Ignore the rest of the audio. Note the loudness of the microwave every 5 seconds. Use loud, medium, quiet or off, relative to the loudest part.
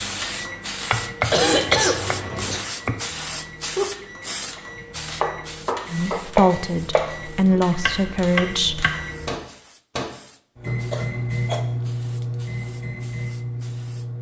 medium, medium, loud.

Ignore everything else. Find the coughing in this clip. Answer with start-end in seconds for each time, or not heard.
1.3-2.6, 10.7-11.7.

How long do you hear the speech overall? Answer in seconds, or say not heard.
3 s.